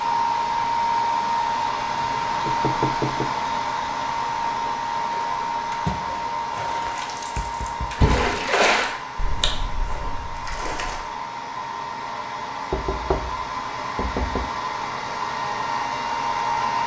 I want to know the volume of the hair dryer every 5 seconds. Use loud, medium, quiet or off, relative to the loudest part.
loud, medium, medium, loud.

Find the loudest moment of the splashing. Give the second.
9 s.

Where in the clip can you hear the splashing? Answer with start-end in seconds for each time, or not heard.
5.0-11.1.